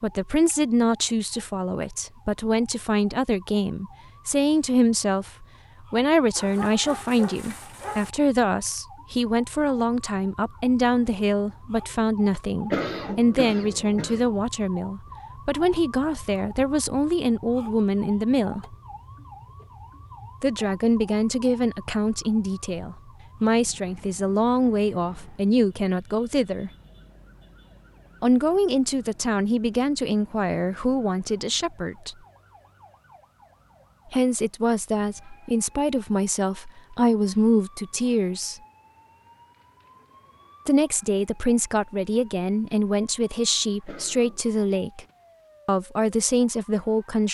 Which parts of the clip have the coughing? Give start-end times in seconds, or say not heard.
12.7-14.3, 43.9-44.4.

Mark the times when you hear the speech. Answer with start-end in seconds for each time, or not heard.
0.0-18.8, 20.4-26.7, 28.2-32.1, 34.1-38.6, 40.6-45.0, 45.6-47.2.